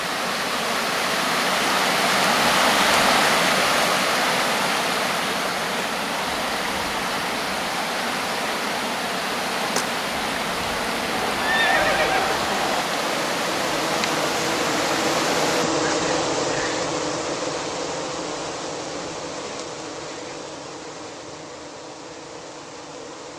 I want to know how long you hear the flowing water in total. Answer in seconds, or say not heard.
16 s.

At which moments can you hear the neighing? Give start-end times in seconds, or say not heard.
11.3-12.8.